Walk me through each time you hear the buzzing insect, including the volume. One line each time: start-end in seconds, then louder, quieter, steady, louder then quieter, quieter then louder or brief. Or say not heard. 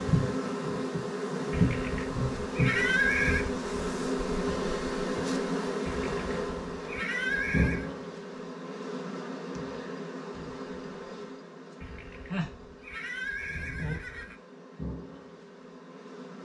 0.0-16.3 quieter.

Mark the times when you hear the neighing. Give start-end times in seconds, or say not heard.
1.5-3.5, 5.8-7.9, 11.8-14.3.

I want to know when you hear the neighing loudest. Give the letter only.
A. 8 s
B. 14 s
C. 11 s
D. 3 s
D.